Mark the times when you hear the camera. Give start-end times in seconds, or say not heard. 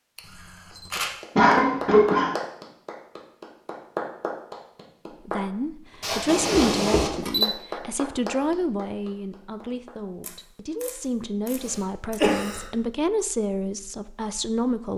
0.1-1.1, 6.2-7.5, 10.2-12.2.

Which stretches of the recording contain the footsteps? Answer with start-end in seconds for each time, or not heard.
not heard.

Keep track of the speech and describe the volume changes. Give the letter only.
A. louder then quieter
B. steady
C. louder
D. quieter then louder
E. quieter
D.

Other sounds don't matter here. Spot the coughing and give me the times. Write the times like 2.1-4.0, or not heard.
1.4-2.4, 6.0-7.1, 11.6-12.7.